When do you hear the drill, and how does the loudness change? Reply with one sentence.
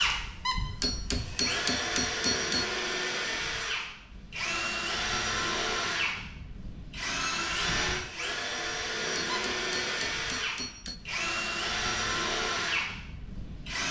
The drill can be heard from 0.0 to 13.8 s, at a steady volume.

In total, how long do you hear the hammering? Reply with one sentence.
The hammering can be heard for 4 seconds in total.